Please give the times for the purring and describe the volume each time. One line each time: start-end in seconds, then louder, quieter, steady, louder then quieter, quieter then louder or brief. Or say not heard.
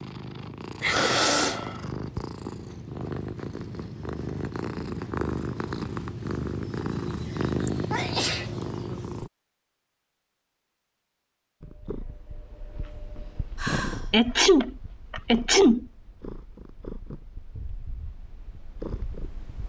0.0-9.3 louder
11.6-19.6 louder.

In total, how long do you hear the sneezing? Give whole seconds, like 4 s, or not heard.
4 s.